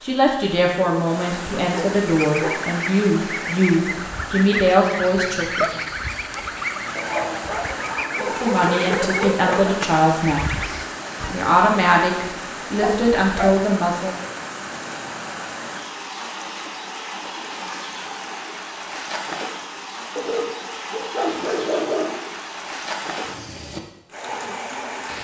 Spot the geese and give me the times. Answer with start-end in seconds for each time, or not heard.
2.0-11.3.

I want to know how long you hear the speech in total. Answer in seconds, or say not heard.
12 s.